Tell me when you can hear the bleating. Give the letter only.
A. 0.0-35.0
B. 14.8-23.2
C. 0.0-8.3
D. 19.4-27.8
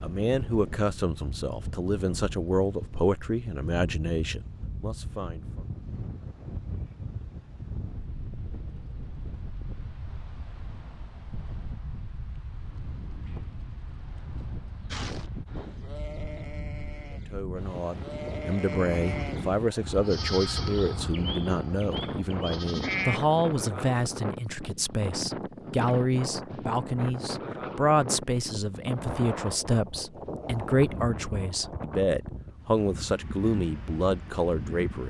B.